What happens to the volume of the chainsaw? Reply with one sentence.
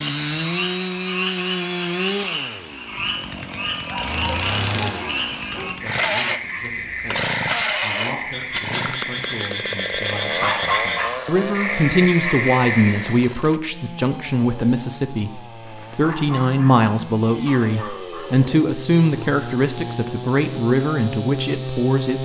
The volume of the chainsaw goes down, then up.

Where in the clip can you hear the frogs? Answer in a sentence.
You can hear the frogs from 0.0 to 13.2 s.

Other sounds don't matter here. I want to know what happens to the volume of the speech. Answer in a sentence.
The loudness of the speech goes up.